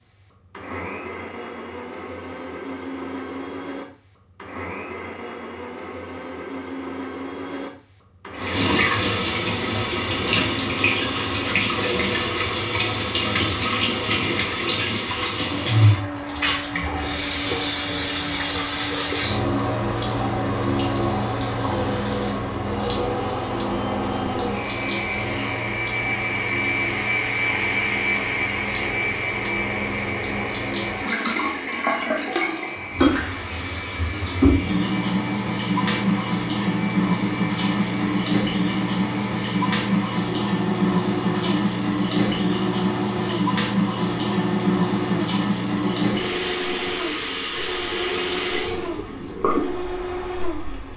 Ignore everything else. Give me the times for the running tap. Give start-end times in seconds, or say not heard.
8.3-50.9.